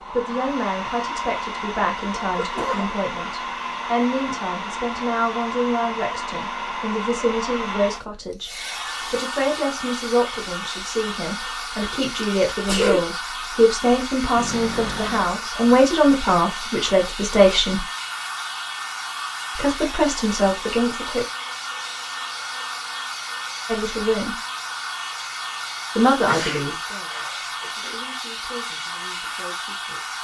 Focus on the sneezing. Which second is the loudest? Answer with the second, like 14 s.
13 s.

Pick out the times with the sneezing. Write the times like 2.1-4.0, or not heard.
2.4-2.9, 12.2-13.1, 26.2-27.9.